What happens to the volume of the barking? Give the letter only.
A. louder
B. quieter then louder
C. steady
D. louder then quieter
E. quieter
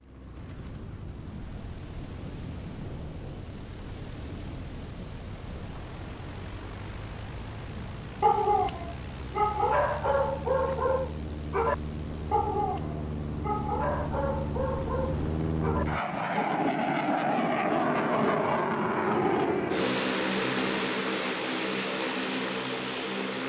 E.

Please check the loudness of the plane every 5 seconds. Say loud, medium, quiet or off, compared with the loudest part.
quiet, quiet, medium, loud, loud.